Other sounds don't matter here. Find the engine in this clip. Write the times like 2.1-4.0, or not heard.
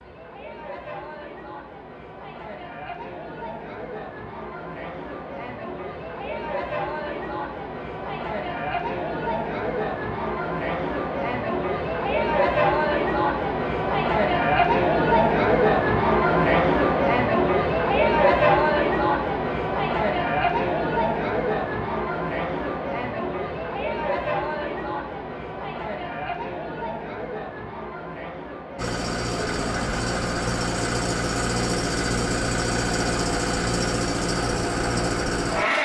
28.8-35.8.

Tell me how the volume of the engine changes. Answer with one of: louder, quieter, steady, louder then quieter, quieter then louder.
steady.